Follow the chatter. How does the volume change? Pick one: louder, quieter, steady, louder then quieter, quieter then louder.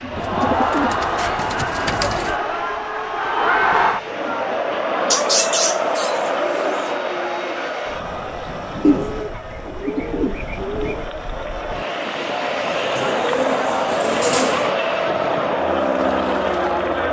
quieter then louder.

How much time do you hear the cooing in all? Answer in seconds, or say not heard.
8 s.